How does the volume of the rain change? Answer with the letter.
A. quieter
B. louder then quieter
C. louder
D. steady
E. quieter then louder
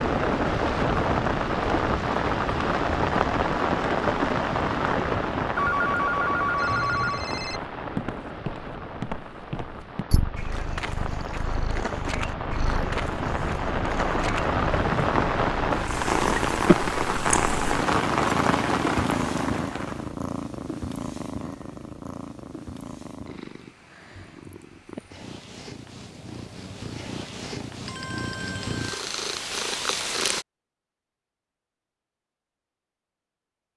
E.